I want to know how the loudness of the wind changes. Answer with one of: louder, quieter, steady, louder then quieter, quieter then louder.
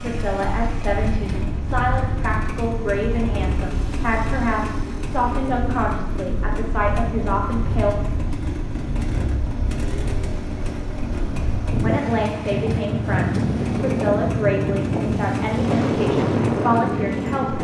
louder.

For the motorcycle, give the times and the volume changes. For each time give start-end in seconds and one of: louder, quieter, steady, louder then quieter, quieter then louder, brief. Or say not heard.
0.0-17.5 steady.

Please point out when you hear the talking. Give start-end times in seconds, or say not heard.
0.0-8.0, 11.8-17.5.